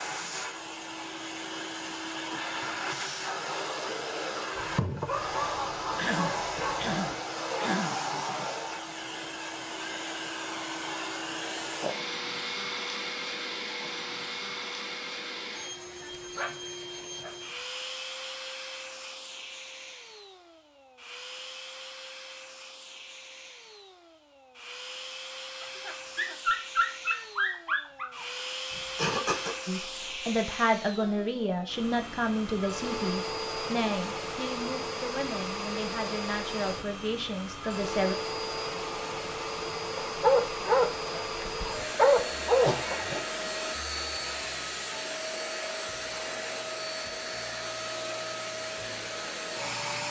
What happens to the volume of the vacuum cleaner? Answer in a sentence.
The loudness of the vacuum cleaner goes down, then up.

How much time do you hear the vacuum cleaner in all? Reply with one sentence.
The vacuum cleaner can be heard for 50 seconds in total.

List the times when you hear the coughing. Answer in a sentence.
You can hear the coughing from 6.0 to 8.0 s, from 28.7 to 29.6 s and from 42.6 to 43.2 s.